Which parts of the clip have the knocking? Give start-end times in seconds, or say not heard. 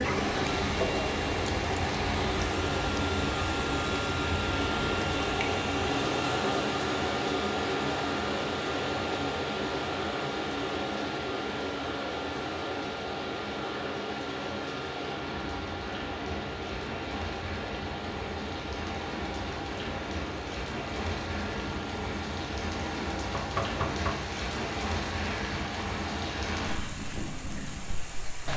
23.4-24.1.